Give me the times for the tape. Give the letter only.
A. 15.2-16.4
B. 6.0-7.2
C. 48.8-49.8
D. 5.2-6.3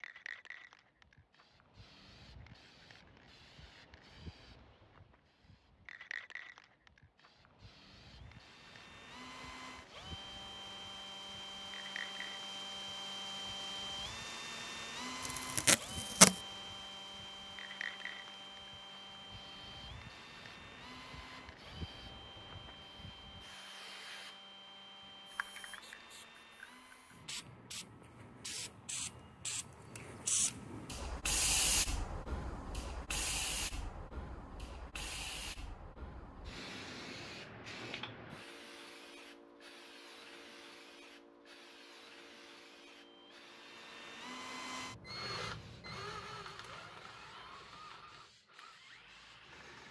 A.